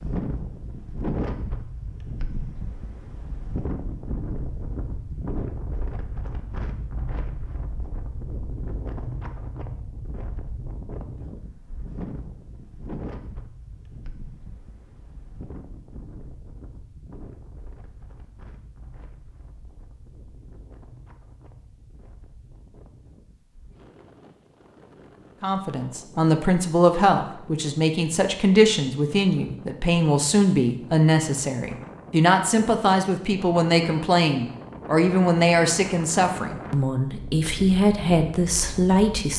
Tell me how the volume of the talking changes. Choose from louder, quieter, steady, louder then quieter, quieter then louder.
steady.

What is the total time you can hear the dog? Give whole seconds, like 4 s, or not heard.
not heard.